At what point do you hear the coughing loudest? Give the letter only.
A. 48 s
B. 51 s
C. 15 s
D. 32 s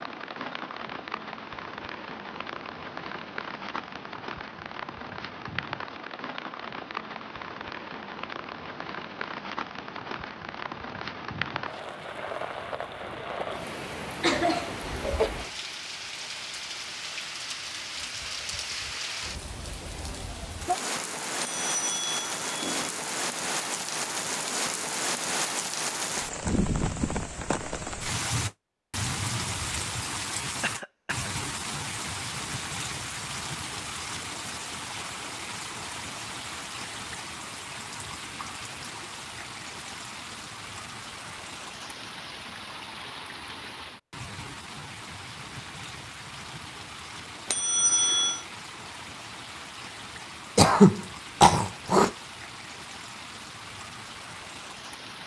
B.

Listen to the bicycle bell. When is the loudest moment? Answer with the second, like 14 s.
48 s.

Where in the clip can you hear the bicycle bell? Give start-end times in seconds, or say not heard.
21.4-22.9, 47.5-48.5.